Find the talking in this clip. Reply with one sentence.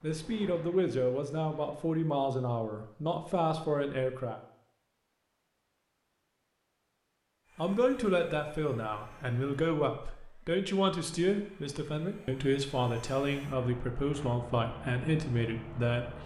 The talking can be heard from 0.0 to 4.4 s and from 7.5 to 16.2 s.